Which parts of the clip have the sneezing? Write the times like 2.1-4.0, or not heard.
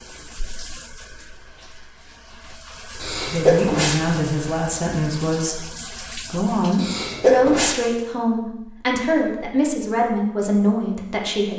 3.0-4.2, 6.8-7.8.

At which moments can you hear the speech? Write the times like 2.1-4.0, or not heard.
3.3-11.5.